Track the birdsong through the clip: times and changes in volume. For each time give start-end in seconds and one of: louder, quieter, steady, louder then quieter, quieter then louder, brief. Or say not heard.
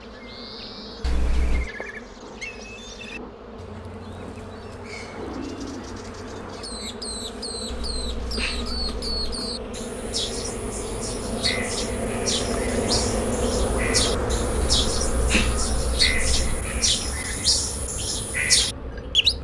0.0-19.4 louder.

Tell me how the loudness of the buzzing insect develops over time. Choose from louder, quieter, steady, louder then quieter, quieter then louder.
louder then quieter.